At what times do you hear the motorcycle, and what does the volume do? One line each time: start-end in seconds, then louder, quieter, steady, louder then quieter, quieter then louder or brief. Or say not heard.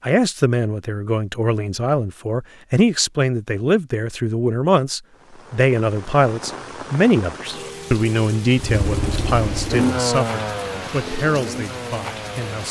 8.6-12.6 louder then quieter.